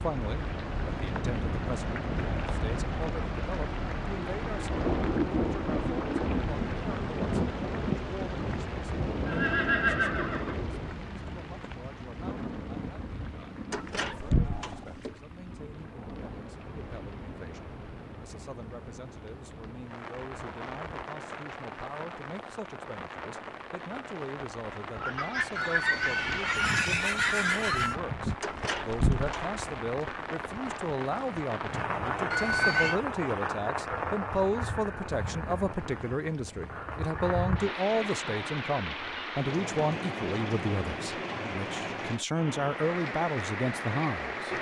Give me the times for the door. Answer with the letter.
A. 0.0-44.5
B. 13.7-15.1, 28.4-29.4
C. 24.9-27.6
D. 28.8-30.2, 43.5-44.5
B.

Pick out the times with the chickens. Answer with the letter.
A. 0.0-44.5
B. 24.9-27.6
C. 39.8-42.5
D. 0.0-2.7
B.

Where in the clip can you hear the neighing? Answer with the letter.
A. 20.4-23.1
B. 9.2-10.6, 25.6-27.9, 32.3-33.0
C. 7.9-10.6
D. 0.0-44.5
B.